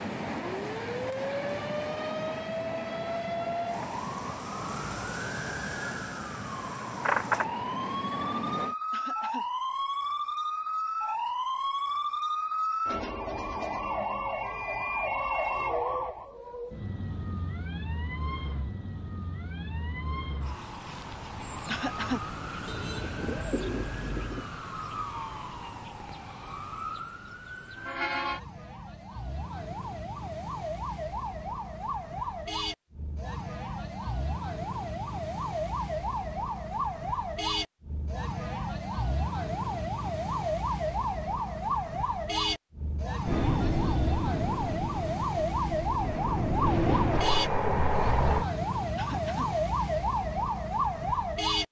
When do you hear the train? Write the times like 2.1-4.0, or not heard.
0.0-8.8, 43.2-48.5.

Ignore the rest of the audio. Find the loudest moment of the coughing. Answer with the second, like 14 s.
22 s.